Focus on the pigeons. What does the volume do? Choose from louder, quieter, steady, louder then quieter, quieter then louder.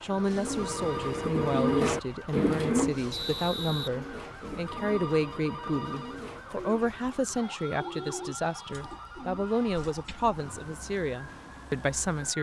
quieter.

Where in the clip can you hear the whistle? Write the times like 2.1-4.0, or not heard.
3.1-3.9.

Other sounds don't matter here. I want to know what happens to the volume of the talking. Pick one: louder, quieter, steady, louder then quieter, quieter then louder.
steady.